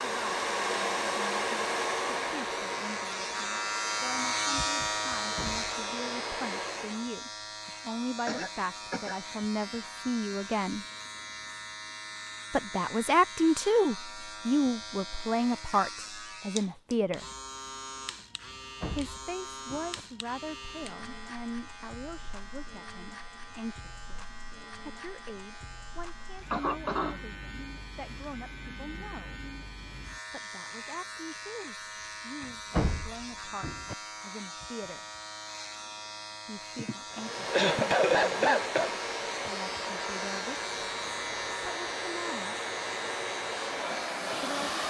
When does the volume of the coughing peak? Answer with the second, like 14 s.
38 s.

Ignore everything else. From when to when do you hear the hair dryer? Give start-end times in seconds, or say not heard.
0.0-7.1, 37.1-44.8.